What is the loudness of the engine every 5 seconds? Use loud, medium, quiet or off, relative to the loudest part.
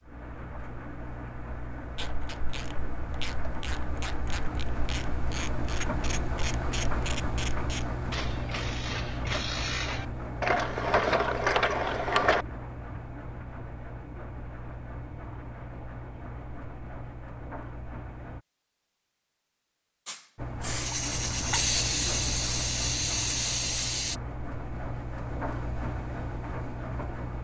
medium, loud, medium, medium, loud, loud.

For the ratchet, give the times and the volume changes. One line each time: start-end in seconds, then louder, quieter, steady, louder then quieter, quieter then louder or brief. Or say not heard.
1.9-12.4 louder.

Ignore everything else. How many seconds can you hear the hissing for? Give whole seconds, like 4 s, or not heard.
4 s.